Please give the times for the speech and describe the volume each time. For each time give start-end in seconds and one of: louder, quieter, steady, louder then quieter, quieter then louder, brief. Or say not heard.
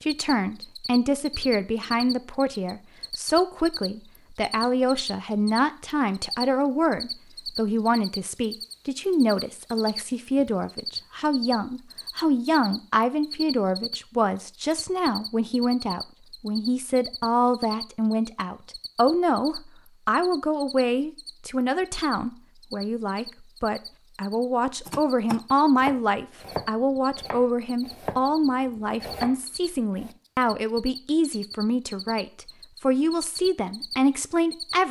0.0-34.8 steady.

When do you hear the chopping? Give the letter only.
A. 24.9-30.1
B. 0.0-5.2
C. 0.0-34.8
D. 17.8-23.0
A.